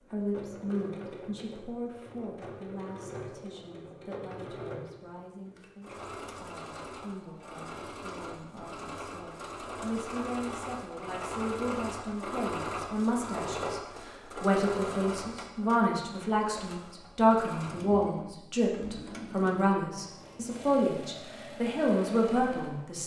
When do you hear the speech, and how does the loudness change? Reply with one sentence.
You can hear the speech from 0.1 to 23.0 s, getting quieter then louder.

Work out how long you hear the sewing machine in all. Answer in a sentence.
The sewing machine can be heard for 23 seconds in total.